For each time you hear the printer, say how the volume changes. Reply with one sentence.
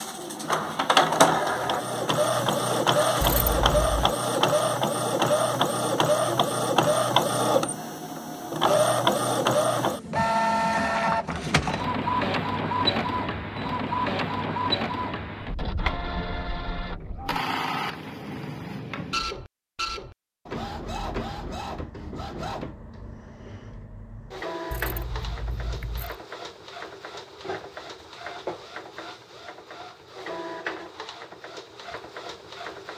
The printer can be heard from 0.0 to 32.9 s, getting quieter.